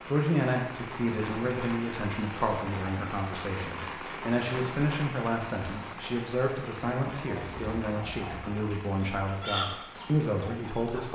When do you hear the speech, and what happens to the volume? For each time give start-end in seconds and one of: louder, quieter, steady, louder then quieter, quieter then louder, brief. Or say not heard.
0.1-11.1 steady.